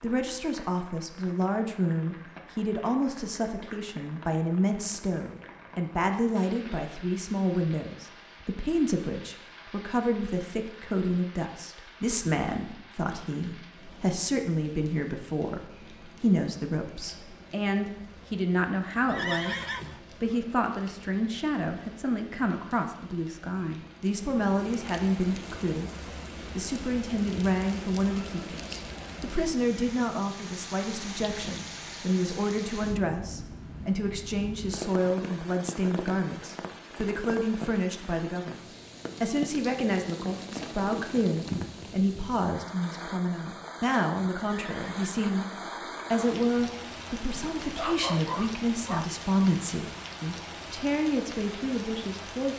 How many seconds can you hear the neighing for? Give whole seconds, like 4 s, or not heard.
2 s.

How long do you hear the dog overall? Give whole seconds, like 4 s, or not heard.
2 s.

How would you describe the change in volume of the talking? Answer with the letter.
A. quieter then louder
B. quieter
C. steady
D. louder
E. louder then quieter
C.